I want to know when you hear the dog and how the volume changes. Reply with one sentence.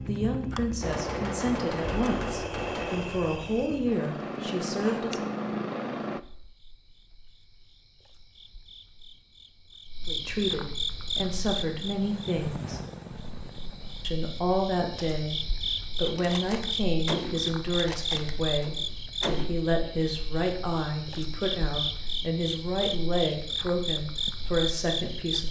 You can't hear the dog here.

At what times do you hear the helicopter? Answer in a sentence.
You can hear the helicopter from 0.0 to 6.2 s and from 10.9 to 14.2 s.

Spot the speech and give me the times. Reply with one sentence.
You can hear the speech from 0.0 to 5.2 s, from 10.1 to 12.8 s and from 14.0 to 25.4 s.